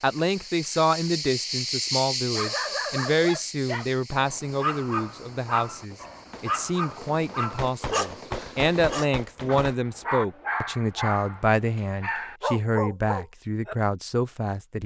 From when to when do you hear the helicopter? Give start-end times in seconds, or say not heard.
not heard.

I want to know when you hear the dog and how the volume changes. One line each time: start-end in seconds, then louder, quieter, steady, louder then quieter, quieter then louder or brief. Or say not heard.
2.3-13.8 steady.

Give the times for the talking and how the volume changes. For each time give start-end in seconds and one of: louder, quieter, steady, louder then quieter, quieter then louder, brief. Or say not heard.
0.0-14.8 steady.